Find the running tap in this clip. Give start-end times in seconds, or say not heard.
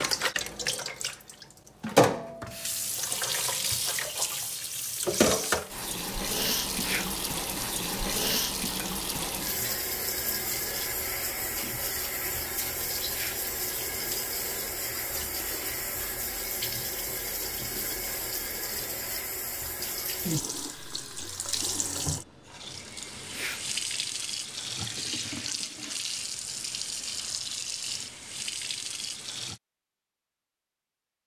0.0-29.6.